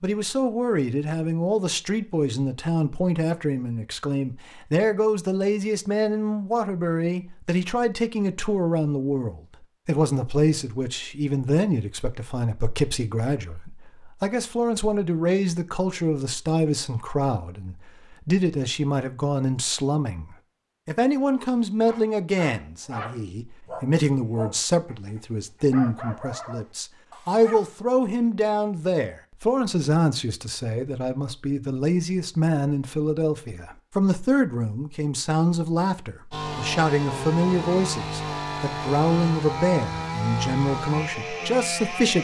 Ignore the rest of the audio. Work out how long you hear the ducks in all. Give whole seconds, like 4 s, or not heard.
not heard.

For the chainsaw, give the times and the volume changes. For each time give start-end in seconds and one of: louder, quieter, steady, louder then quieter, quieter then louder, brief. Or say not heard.
36.3-42.1 steady.